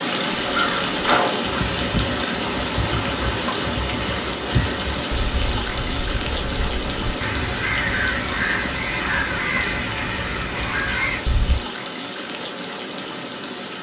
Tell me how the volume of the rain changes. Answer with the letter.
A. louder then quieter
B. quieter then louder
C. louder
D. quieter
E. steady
D.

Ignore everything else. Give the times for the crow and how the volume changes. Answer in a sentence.
The crow can be heard from 0.5 to 11.6 s, getting quieter then louder.